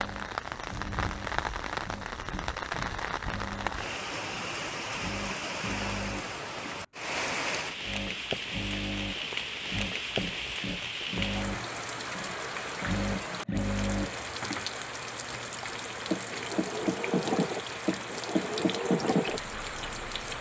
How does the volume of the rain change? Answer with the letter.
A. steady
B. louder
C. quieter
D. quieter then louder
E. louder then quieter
A.